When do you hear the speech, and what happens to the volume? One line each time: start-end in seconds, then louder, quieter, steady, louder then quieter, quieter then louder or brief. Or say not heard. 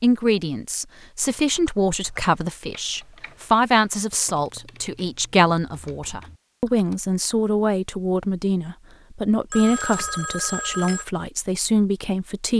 0.0-12.5 steady.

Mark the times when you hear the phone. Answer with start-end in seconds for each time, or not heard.
9.5-11.1.